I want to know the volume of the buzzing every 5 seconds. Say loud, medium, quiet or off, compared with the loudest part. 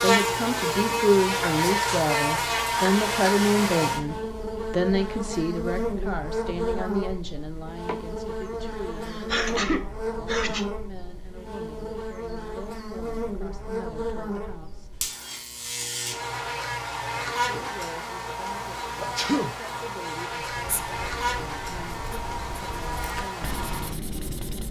loud, medium, medium, medium, medium.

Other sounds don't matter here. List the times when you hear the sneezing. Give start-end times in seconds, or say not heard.
7.8-10.7, 18.9-19.6.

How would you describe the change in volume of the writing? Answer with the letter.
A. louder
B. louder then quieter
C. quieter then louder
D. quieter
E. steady
A.